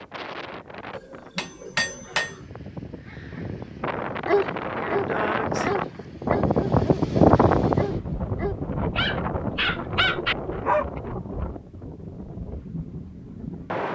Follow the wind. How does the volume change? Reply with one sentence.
The volume of the wind goes up, then down.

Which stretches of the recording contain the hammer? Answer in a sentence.
You can hear the hammer from 0.9 to 2.4 s.